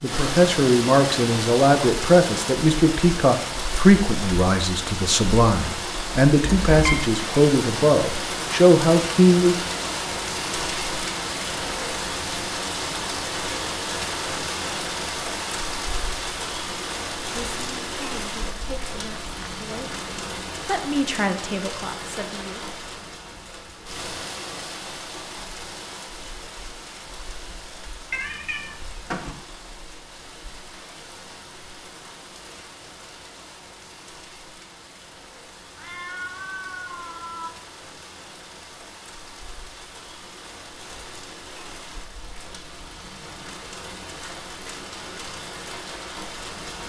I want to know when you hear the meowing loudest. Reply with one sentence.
The volume of the meowing peaks at 7 seconds.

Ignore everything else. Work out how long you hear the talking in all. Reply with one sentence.
You can hear the talking for 15 seconds altogether.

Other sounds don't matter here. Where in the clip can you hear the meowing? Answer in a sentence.
You can hear the meowing from 6.4 to 7.0 s, from 28.1 to 29.4 s and from 35.8 to 37.5 s.